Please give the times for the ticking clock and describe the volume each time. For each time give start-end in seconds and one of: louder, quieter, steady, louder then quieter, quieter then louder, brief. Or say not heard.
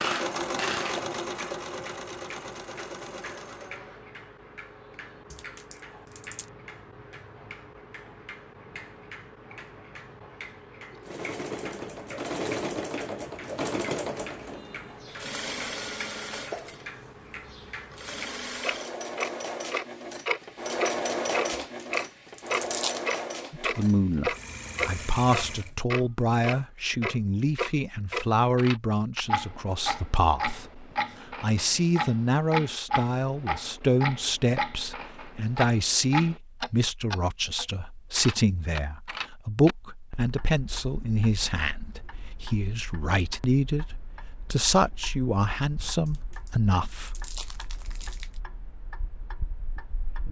0.0-50.2 louder then quieter.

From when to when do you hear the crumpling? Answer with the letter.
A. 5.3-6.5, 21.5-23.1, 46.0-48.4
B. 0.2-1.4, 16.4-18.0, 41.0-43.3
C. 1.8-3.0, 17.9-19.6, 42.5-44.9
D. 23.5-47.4
A.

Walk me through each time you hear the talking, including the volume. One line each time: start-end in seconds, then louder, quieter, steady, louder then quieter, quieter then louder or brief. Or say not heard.
23.5-47.4 steady.